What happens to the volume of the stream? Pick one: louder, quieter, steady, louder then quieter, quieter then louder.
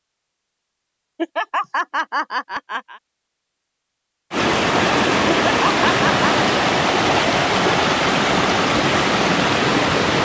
steady.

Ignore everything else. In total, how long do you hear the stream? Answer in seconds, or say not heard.
6 s.